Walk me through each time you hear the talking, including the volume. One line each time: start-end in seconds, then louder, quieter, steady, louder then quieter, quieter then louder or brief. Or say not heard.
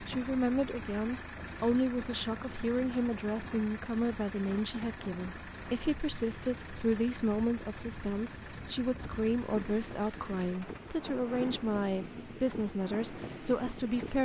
0.0-14.1 steady.